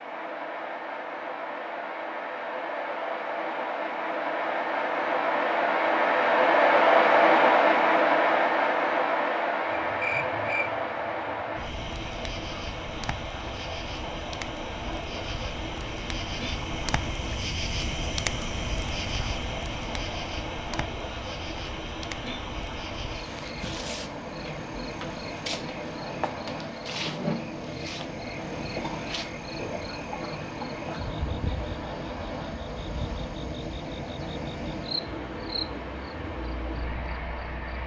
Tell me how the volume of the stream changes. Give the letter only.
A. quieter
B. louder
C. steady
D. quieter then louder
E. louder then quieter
A.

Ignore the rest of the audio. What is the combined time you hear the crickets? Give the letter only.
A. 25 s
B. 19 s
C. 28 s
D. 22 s
C.